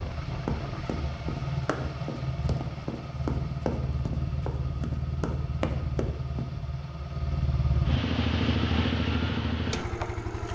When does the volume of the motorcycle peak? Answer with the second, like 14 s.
8 s.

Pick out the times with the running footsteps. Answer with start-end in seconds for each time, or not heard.
0.5-6.5.